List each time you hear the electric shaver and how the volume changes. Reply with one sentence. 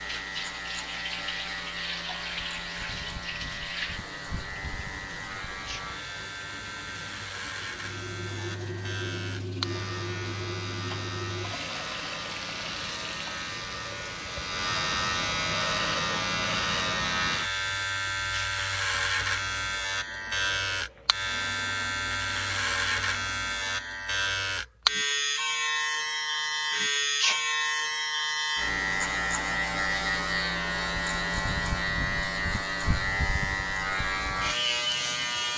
The electric shaver can be heard from 0.0 to 35.5 s, getting louder.